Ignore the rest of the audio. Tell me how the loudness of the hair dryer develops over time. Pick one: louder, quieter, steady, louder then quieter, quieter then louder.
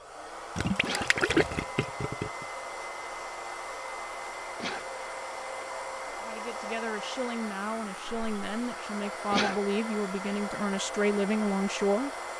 steady.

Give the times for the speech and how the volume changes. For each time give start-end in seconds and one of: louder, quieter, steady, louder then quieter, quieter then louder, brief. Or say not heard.
6.2-12.1 louder.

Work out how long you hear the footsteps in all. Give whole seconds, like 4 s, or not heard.
not heard.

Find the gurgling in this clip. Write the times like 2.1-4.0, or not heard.
0.6-2.5.